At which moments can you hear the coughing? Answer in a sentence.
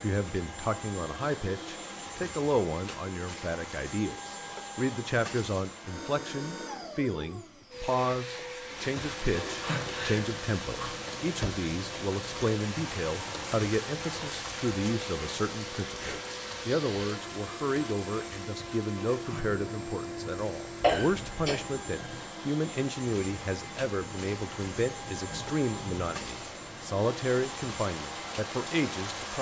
The coughing can be heard from 20.8 to 21.6 s.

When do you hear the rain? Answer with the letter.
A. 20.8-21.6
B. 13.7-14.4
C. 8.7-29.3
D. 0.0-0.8
C.